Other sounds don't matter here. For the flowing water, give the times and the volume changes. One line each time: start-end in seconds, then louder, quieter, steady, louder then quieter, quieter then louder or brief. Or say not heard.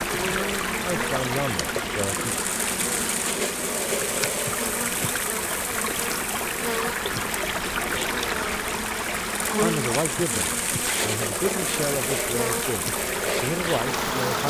0.0-14.4 steady.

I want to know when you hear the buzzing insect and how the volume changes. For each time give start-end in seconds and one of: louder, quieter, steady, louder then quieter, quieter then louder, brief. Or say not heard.
0.0-14.4 steady.